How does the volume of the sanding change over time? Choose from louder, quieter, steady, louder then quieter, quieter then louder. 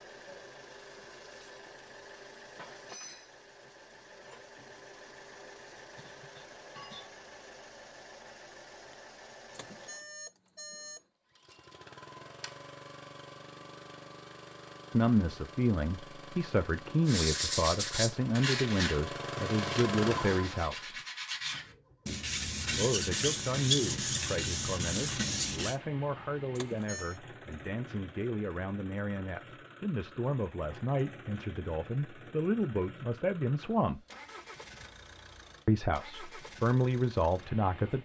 quieter then louder.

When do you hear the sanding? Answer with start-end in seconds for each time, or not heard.
17.1-25.8.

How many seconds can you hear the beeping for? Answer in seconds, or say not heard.
2 s.